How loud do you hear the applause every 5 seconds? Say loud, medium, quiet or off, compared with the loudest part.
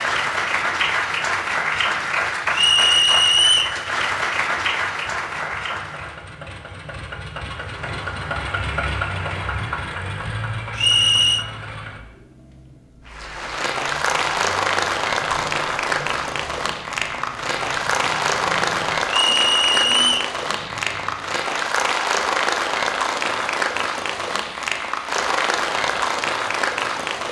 loud, medium, loud, loud, loud, loud.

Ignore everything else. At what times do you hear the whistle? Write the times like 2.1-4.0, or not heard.
2.5-3.8, 10.8-11.4, 19.1-20.4.